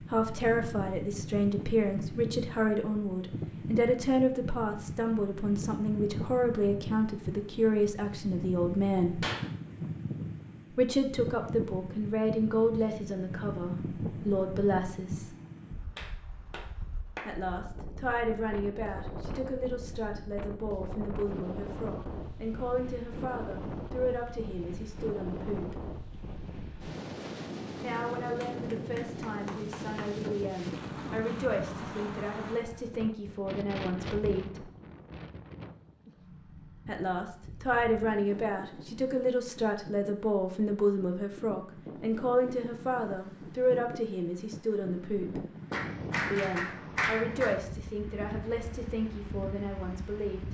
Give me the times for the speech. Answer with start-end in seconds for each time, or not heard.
0.0-9.2, 10.8-15.3, 17.2-25.8, 27.8-34.7, 36.9-45.5, 46.3-50.4.